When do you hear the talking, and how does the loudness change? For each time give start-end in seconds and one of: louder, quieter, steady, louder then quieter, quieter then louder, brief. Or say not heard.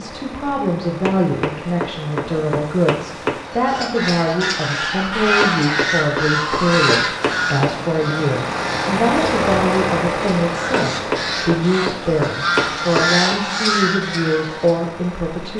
0.0-15.5 steady.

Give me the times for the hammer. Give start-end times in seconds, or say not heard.
1.1-3.5, 5.4-7.8, 10.9-13.3.